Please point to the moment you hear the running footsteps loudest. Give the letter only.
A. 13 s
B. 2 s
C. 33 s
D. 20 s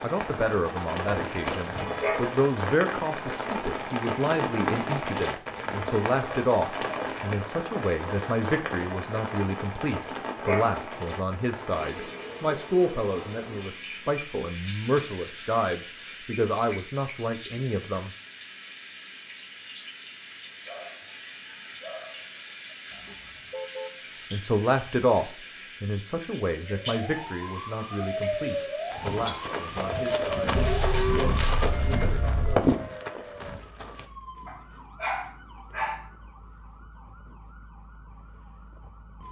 C.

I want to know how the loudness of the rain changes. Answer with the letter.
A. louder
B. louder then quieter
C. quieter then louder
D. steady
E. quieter
E.